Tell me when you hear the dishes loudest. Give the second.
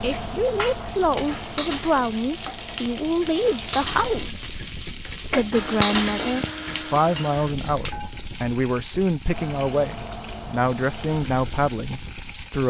6 s.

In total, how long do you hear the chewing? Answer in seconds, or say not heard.
not heard.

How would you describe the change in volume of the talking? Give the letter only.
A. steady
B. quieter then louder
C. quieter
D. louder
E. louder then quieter
A.